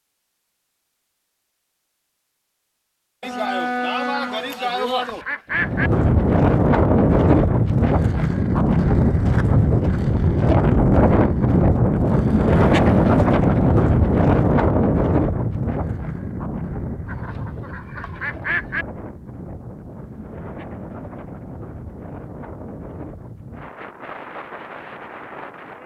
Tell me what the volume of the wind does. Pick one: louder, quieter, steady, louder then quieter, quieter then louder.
quieter.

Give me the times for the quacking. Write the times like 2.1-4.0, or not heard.
4.3-5.9, 17.1-18.9.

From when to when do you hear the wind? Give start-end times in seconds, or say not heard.
5.5-25.8.